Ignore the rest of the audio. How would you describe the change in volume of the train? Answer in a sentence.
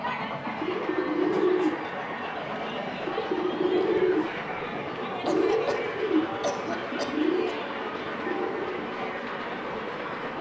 The loudness of the train stays about the same.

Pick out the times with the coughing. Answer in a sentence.
You can hear the coughing from 1.3 to 1.8 s and from 5.2 to 7.5 s.